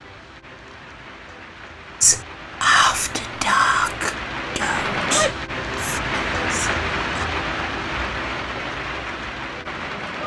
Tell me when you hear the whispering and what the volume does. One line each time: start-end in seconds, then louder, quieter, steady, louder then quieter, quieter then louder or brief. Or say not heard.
2.0-7.2 quieter.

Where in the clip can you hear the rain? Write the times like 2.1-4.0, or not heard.
0.0-10.2.